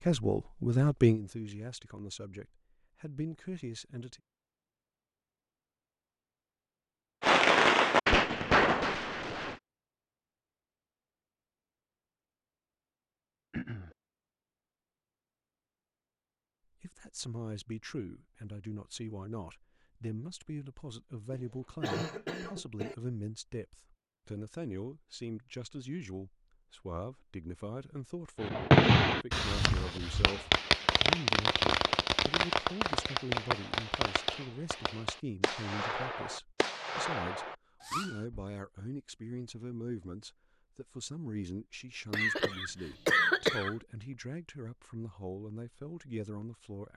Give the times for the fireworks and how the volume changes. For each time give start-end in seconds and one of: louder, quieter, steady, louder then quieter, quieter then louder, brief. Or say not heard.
7.2-9.6 brief
28.4-38.5 quieter.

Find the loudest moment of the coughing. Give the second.
43 s.